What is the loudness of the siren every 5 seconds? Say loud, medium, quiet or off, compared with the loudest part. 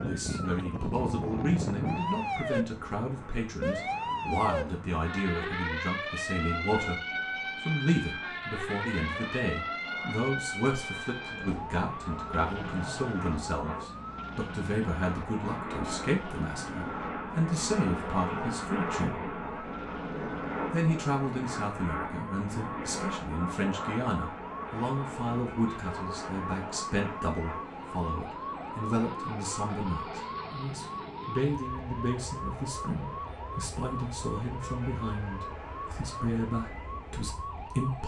loud, loud, medium, medium, medium, medium, medium, medium.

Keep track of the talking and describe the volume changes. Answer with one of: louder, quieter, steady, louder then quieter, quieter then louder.
steady.